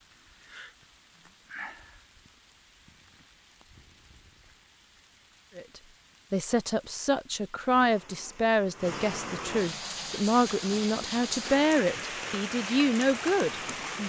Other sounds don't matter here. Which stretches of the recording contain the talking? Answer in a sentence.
The talking can be heard from 5.5 to 14.0 s.